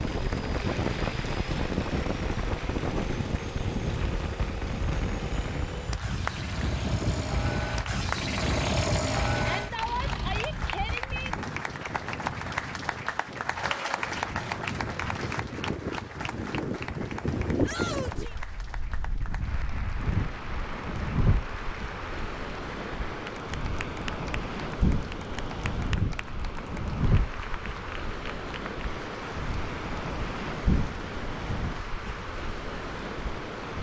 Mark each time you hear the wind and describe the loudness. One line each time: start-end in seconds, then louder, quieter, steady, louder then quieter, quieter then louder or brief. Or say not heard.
0.0-33.7 steady.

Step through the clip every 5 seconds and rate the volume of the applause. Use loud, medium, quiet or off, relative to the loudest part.
medium, medium, loud, medium, medium, medium, medium.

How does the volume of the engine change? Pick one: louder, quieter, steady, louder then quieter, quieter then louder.
louder.